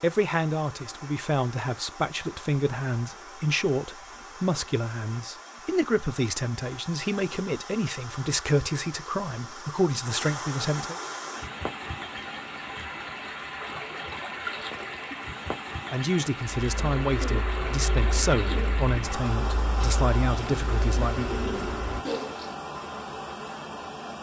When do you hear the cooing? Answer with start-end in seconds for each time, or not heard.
16.6-22.6.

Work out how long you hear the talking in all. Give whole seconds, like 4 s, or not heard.
16 s.